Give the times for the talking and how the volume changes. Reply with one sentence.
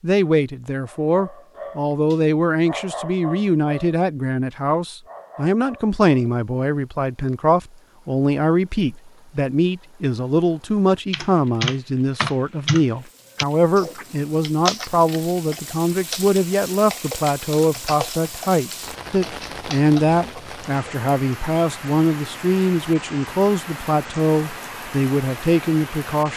The talking can be heard from 0.0 to 26.3 s, at a steady volume.